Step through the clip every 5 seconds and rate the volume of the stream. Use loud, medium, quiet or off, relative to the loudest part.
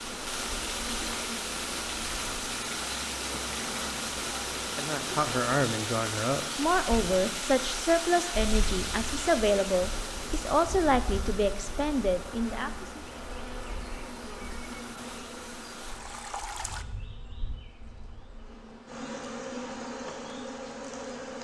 loud, loud, medium, medium, off.